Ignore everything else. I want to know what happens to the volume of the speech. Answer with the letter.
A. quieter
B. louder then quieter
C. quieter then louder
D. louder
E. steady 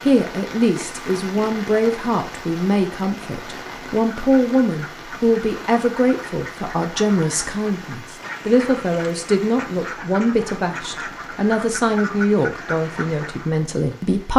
E.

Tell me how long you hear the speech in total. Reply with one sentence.
The speech can be heard for 14 seconds in total.